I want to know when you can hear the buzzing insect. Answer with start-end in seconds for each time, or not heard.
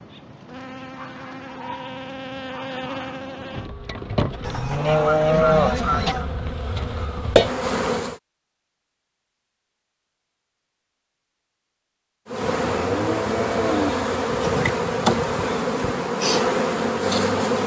0.0-8.2, 12.2-17.6.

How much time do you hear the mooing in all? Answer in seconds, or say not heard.
3 s.